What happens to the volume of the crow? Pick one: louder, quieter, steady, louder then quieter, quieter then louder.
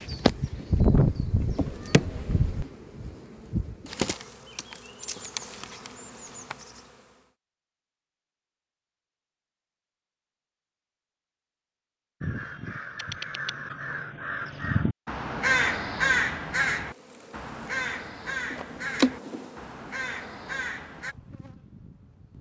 louder then quieter.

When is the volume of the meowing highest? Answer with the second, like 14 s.
1 s.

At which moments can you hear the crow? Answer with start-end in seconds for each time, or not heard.
12.2-21.1.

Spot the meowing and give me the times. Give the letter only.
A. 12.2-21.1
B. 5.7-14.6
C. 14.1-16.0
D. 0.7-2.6
D.